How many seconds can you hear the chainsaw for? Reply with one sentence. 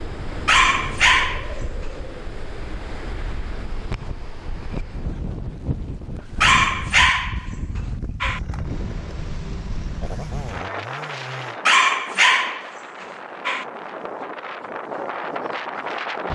The chainsaw can be heard for 4 seconds in total.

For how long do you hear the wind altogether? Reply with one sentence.
The wind can be heard for 16 seconds in total.